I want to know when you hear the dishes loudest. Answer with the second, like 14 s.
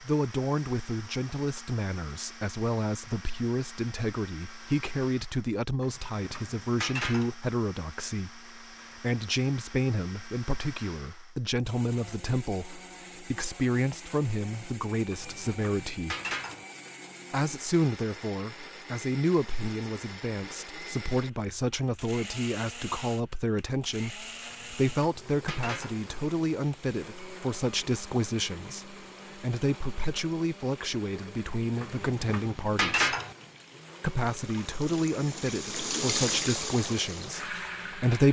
33 s.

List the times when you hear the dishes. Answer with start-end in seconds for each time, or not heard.
5.8-7.3, 15.1-16.6, 24.5-26.1, 31.8-33.4.